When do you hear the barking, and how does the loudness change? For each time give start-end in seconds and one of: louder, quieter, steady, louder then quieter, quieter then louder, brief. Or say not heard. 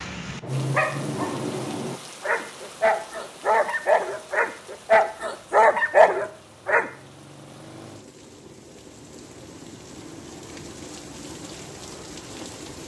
0.4-6.8 louder.